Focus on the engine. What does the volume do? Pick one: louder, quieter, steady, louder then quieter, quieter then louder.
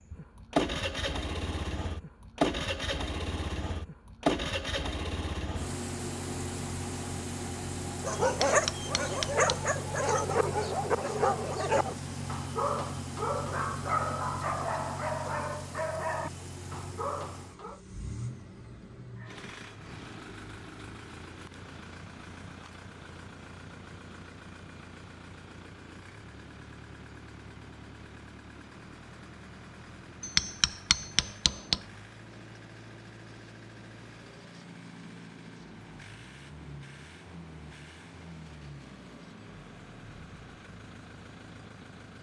quieter.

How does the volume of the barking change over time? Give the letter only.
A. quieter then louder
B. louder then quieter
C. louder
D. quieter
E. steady
D.